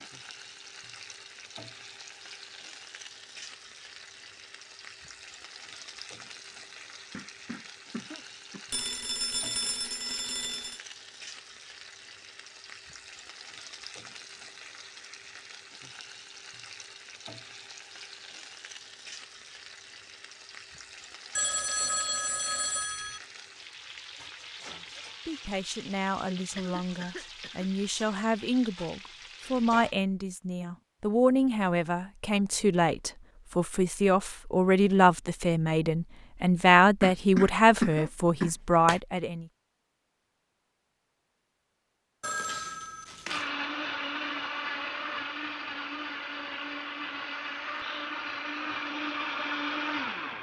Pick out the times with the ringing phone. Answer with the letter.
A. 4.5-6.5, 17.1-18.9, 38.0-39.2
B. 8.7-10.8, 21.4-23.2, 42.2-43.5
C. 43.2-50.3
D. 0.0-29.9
B.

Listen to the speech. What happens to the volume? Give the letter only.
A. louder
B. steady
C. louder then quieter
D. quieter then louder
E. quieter
A.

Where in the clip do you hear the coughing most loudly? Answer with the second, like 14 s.
38 s.